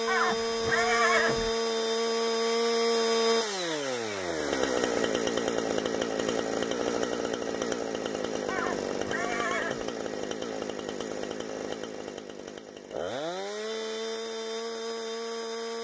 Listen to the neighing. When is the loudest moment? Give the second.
1 s.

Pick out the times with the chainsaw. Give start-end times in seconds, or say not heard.
0.0-15.8.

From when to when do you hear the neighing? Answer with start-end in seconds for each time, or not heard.
0.1-1.6, 8.4-9.8.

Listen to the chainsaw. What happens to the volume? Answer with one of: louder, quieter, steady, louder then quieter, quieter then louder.
quieter.